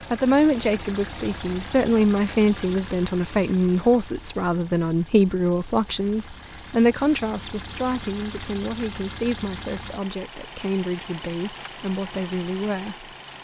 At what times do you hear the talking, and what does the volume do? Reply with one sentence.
You can hear the talking from 0.1 to 13.1 s, getting quieter.